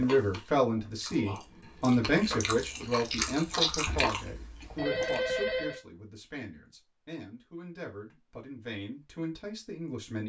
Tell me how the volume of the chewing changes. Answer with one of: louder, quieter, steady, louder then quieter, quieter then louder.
louder then quieter.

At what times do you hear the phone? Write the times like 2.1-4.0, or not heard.
4.6-5.8.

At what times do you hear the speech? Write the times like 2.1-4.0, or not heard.
0.0-10.2.